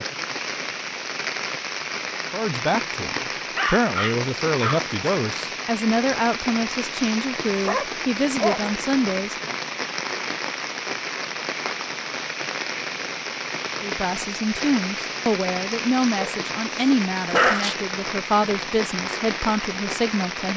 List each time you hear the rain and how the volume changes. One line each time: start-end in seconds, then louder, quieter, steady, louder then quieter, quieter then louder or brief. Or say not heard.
0.0-20.5 steady.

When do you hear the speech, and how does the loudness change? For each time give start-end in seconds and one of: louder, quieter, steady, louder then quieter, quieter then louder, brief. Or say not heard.
2.3-9.6 steady
13.8-20.5 steady.